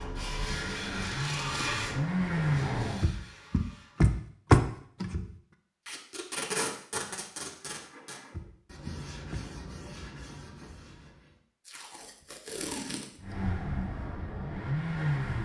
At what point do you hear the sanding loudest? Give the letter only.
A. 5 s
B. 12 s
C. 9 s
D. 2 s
D.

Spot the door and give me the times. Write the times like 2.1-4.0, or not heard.
3.0-5.2, 8.3-9.4.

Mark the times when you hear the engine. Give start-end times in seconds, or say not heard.
0.0-3.1, 13.2-15.3.